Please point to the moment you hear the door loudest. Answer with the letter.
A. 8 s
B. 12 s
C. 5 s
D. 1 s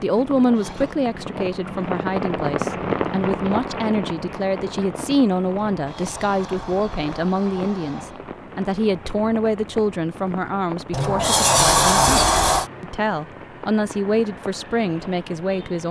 B.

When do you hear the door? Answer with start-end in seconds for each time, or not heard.
0.2-0.9, 5.7-8.2, 10.9-12.7.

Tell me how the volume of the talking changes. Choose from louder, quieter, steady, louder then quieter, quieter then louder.
steady.